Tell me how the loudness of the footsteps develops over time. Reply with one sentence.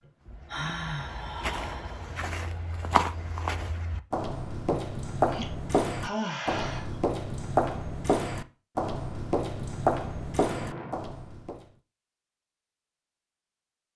The loudness of the footsteps goes up.